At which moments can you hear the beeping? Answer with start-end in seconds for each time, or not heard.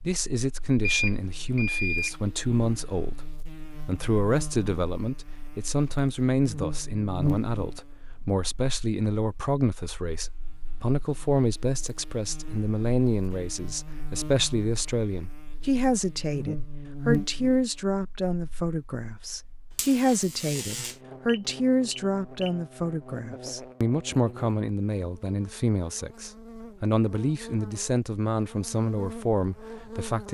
0.8-2.1, 21.2-22.5.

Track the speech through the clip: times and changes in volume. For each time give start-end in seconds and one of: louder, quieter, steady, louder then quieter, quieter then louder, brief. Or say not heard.
0.0-30.3 steady.